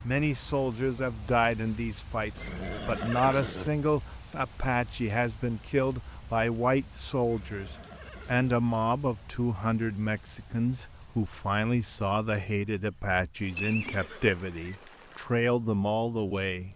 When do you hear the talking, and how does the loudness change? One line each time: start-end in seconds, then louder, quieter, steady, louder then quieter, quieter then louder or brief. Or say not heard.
0.0-16.7 steady.